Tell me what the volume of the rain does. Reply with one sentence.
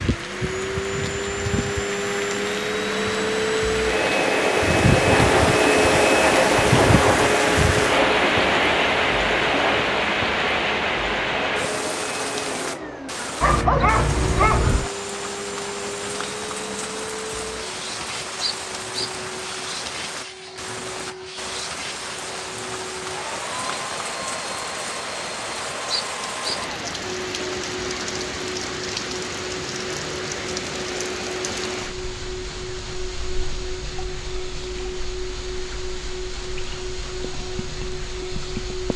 The volume of the rain goes down.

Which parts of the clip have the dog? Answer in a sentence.
You can hear the dog from 13.4 to 14.9 s.